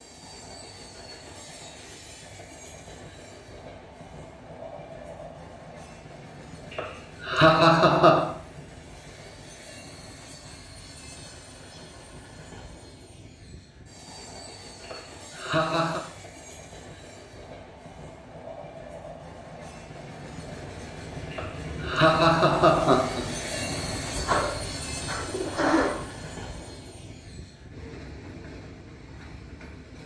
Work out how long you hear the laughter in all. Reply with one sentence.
You can hear the laughter for 5 seconds altogether.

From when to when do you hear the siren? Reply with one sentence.
The siren can't be heard in this clip.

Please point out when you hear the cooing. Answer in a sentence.
You can hear the cooing from 24.1 to 25.9 s.